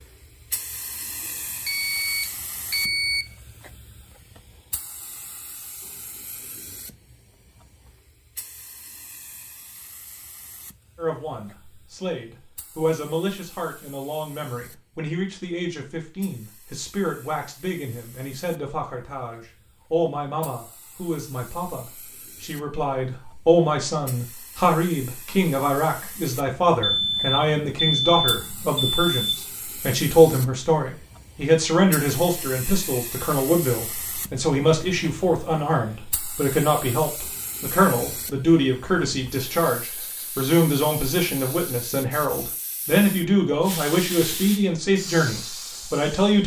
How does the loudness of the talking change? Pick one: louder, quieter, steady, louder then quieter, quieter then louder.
louder.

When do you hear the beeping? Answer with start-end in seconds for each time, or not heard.
1.6-3.2, 26.8-29.4.